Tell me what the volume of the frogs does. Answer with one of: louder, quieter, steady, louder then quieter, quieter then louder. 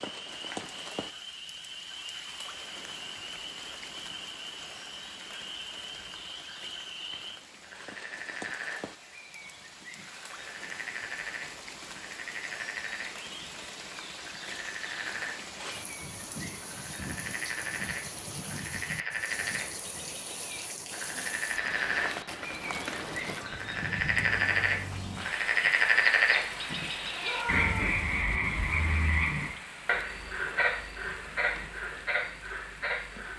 louder.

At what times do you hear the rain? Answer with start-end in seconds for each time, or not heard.
0.0-33.3.